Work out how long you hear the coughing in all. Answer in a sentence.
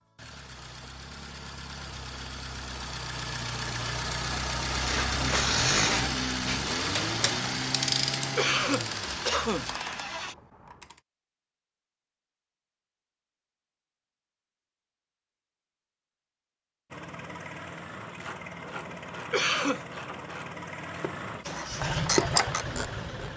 The coughing can be heard for 2 seconds in total.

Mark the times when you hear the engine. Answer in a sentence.
The engine can be heard from 0.0 to 10.3 s and from 16.9 to 23.3 s.